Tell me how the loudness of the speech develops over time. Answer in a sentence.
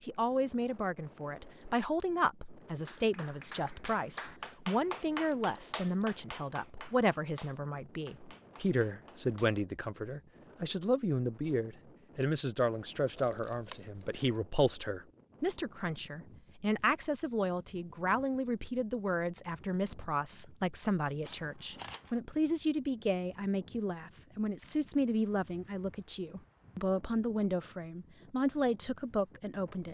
The loudness of the speech stays about the same.